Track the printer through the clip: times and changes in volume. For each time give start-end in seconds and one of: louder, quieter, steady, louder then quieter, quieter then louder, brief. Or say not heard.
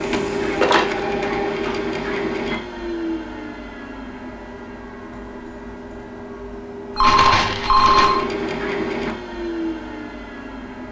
0.0-10.8 quieter then louder.